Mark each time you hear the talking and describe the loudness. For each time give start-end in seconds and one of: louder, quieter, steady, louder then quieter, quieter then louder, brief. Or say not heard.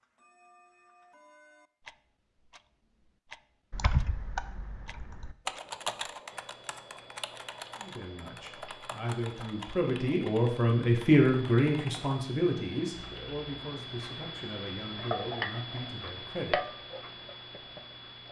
7.8-16.6 louder then quieter.